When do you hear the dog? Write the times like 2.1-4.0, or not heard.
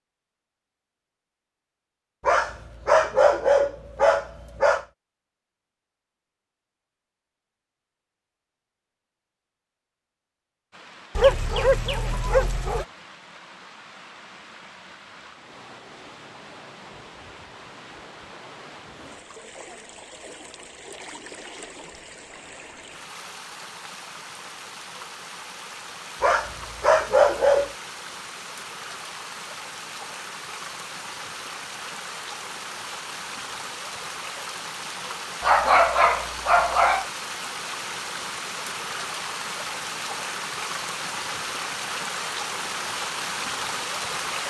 2.2-4.8, 11.2-12.8, 26.2-27.7, 35.4-37.0.